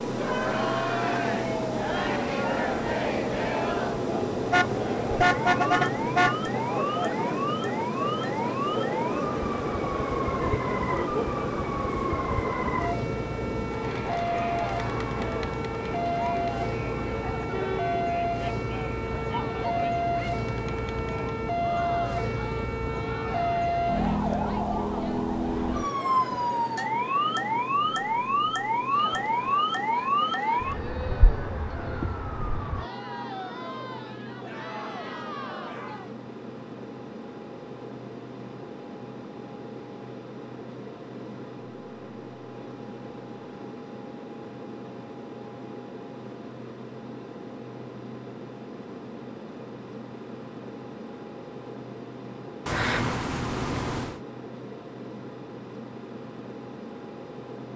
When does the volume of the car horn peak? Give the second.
5 s.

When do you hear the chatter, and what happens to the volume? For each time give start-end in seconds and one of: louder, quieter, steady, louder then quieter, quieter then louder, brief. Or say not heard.
0.1-36.1 quieter.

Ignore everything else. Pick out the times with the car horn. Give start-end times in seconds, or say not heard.
4.5-6.3, 52.6-54.2.